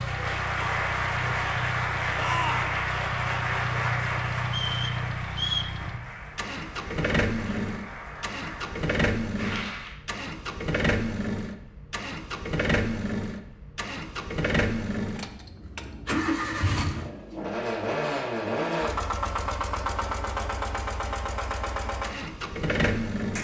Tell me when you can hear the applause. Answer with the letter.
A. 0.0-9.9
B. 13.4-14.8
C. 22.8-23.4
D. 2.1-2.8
A.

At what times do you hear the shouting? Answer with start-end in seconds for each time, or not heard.
2.1-2.8.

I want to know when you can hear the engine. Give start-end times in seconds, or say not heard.
0.0-23.4.